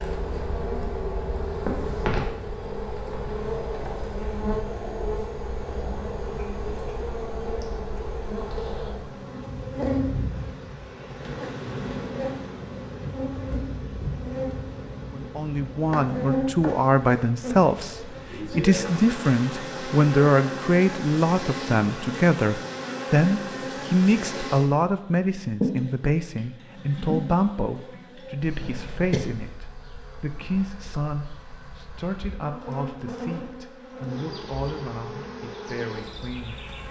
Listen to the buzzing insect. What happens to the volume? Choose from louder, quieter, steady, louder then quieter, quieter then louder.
quieter.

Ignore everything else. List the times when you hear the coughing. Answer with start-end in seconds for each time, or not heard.
28.6-29.2.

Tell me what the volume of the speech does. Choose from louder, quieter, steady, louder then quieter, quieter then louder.
quieter.